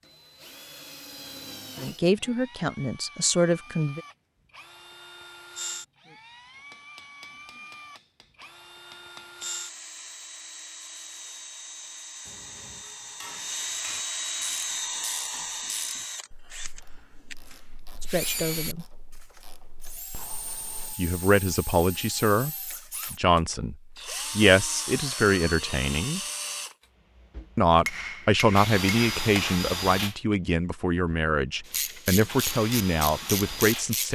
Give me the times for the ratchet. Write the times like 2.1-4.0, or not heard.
14.4-20.9, 31.6-34.1.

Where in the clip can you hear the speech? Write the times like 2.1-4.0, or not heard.
1.8-4.0, 18.0-18.9, 20.9-26.2, 27.6-34.1.